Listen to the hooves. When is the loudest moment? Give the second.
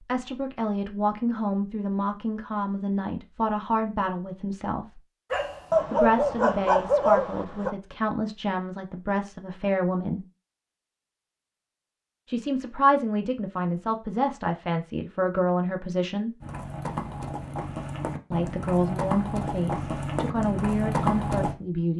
21 s.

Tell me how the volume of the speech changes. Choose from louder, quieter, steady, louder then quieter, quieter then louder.
steady.